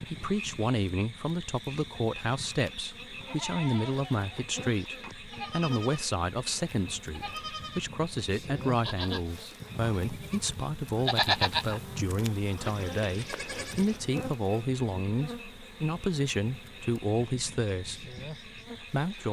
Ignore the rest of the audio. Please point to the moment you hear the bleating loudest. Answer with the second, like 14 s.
11 s.